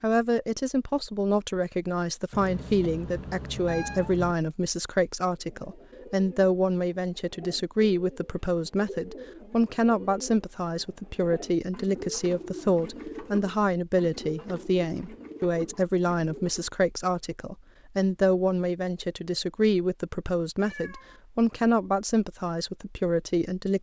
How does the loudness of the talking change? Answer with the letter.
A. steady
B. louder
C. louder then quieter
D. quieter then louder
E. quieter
A.